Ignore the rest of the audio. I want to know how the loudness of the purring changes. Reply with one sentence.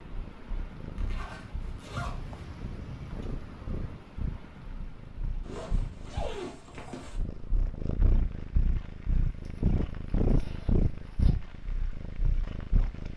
The volume of the purring goes up.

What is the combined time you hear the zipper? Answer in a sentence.
The zipper can be heard for 5 seconds in total.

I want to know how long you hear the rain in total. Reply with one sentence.
You can hear the rain for 13 seconds altogether.